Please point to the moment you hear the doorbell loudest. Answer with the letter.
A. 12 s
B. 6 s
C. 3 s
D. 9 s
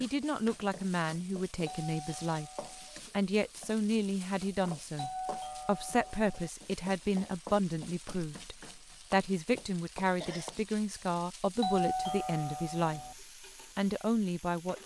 A.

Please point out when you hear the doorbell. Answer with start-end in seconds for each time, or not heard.
1.6-3.0, 5.0-6.5, 11.6-13.2.